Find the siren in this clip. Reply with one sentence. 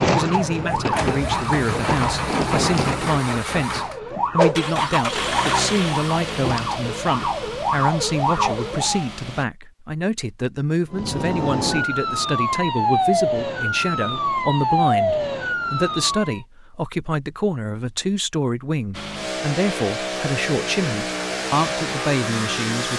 You can hear the siren from 0.0 to 9.1 s and from 10.9 to 16.4 s.